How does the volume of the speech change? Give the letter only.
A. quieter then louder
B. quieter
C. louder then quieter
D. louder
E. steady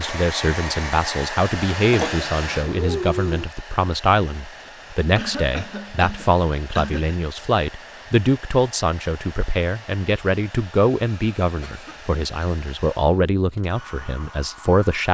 E.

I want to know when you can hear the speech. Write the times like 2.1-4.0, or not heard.
0.0-15.0.